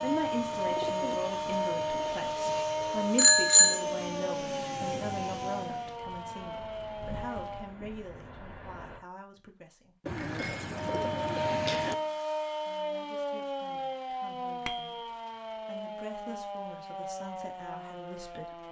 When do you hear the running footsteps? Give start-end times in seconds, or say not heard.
not heard.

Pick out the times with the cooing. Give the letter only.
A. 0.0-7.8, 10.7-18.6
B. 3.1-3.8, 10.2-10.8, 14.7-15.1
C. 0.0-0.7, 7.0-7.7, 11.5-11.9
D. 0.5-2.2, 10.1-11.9
D.